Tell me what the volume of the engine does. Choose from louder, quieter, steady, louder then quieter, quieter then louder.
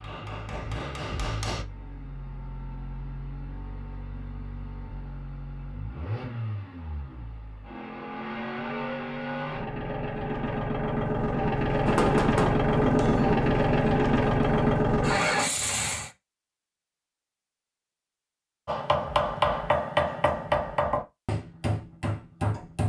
louder.